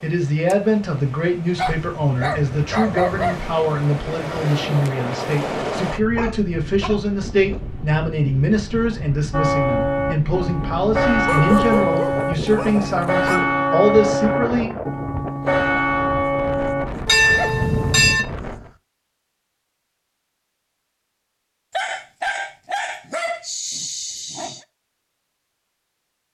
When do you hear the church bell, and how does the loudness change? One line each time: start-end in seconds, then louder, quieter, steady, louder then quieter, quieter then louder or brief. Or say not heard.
9.3-18.2 steady.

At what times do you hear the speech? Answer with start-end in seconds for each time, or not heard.
0.0-14.7.